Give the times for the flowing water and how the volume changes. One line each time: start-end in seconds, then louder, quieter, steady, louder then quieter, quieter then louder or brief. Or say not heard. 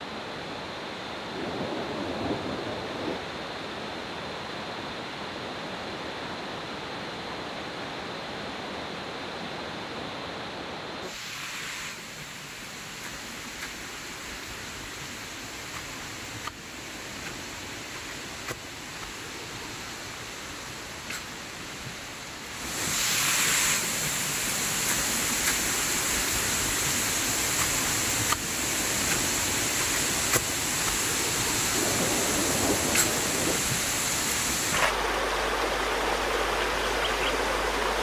0.0-37.9 louder.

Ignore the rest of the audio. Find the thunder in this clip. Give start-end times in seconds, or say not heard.
1.3-3.2, 31.7-33.6.